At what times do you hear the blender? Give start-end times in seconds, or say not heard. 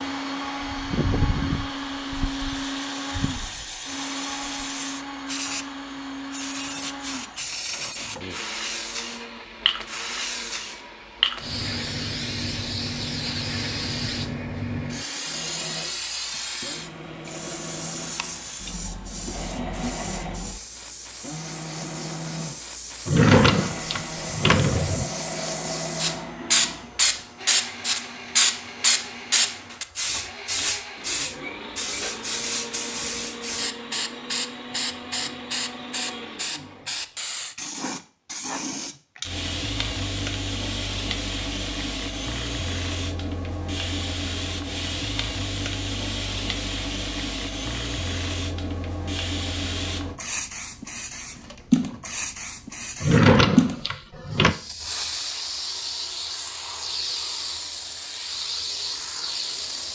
0.0-37.0.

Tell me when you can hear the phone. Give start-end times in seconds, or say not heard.
not heard.